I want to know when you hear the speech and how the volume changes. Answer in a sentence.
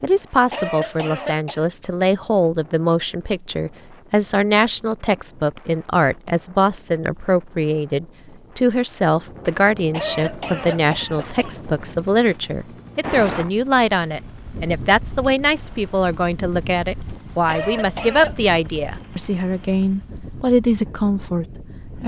You can hear the speech from 0.0 to 22.0 s, at a steady volume.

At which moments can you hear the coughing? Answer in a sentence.
The coughing can be heard from 0.5 to 1.6 s, from 9.9 to 11.6 s and from 17.4 to 18.4 s.